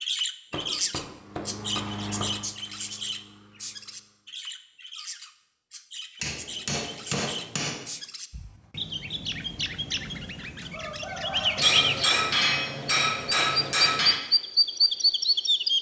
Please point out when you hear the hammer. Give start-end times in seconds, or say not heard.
0.5-2.4, 6.2-7.9, 11.6-14.2.